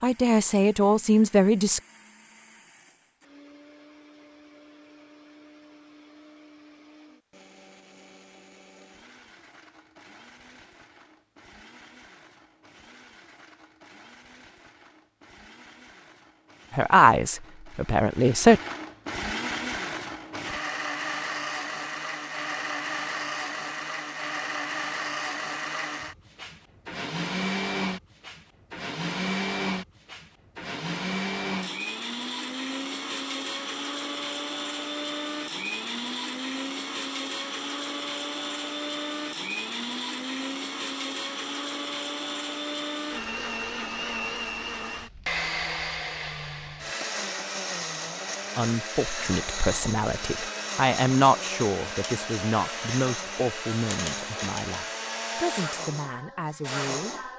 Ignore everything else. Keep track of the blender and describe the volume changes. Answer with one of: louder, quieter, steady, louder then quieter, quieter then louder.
louder.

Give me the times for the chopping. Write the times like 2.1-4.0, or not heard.
not heard.